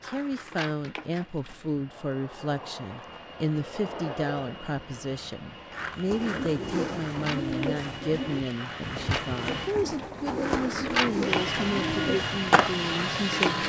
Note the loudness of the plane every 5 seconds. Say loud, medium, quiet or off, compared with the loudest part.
quiet, medium, loud.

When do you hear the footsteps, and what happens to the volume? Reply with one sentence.
You can't hear the footsteps here.